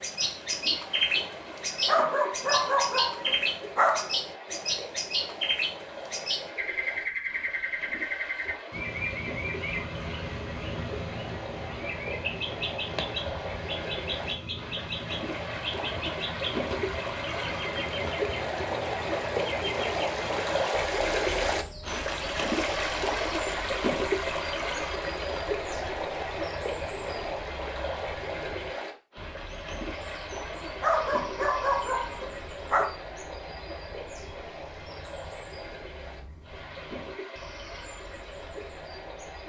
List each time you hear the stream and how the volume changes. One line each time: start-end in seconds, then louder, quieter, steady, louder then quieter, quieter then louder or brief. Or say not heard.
0.0-39.4 louder then quieter.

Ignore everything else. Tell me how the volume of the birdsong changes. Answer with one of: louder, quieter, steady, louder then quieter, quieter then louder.
quieter.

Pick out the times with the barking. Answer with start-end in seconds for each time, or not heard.
1.9-4.1, 30.8-33.0.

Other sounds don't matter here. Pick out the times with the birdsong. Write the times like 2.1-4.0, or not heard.
0.0-39.4.